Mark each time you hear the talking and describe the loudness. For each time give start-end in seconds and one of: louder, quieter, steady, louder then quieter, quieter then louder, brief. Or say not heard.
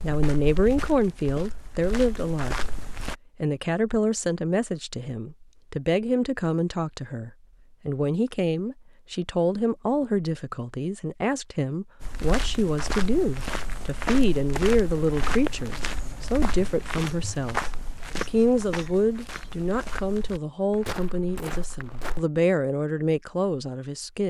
0.0-2.8 brief
3.4-24.2 steady.